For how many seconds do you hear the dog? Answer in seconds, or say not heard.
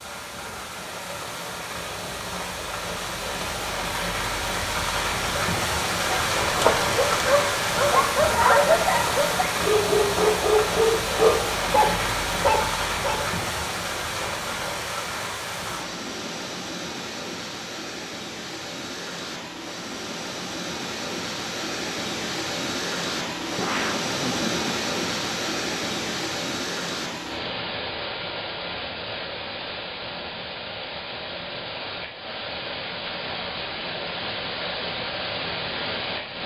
7 s.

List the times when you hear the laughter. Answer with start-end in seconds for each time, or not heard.
23.6-24.7.